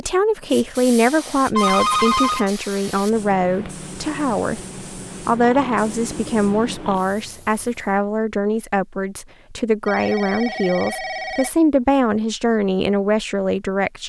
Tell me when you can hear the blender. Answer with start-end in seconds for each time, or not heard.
not heard.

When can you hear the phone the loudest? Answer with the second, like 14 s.
2 s.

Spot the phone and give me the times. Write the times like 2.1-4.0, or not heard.
1.6-2.5, 5.4-7.0, 9.8-11.5.